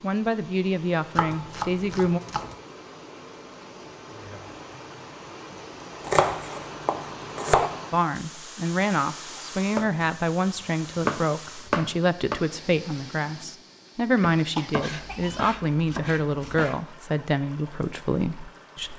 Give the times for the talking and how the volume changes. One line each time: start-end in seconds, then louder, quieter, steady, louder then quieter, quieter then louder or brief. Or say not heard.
0.0-2.2 brief
7.9-18.9 steady.